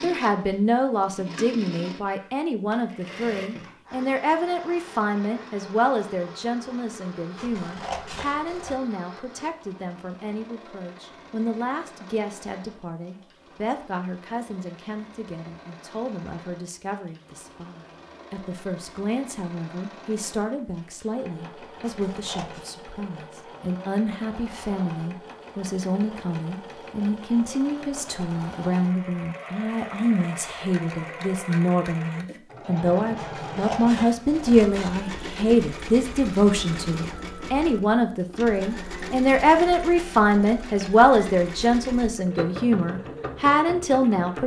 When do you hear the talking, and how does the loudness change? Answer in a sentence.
You can hear the talking from 0.0 to 44.4 s, getting quieter then louder.